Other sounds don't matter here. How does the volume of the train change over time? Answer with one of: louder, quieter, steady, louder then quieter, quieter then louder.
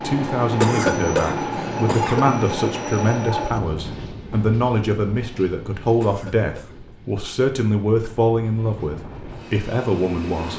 quieter then louder.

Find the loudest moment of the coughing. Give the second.
1 s.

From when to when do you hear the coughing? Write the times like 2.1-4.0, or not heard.
0.6-2.2, 6.0-6.8.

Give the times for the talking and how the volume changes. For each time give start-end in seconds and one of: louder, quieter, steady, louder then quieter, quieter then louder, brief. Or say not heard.
0.0-10.5 steady.